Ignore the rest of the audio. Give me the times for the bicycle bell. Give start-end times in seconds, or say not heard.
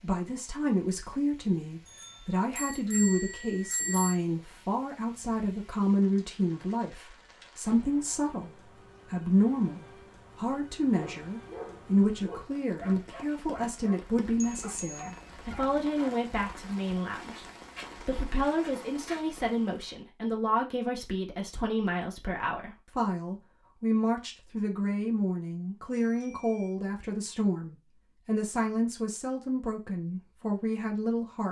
1.9-4.2, 14.2-15.6, 25.9-26.8.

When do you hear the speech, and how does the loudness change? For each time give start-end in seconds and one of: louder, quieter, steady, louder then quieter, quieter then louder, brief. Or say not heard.
0.0-31.4 steady.